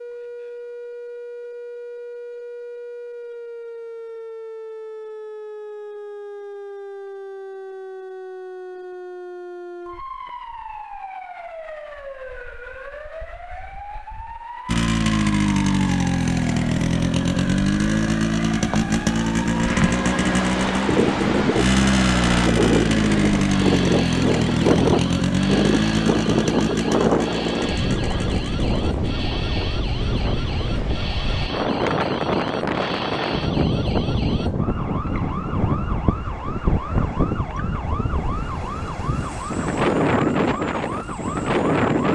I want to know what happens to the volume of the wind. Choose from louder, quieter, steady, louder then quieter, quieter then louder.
steady.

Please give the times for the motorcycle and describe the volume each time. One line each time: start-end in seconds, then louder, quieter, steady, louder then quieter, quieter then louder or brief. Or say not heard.
14.7-31.4 quieter.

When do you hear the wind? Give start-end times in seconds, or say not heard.
19.5-42.1.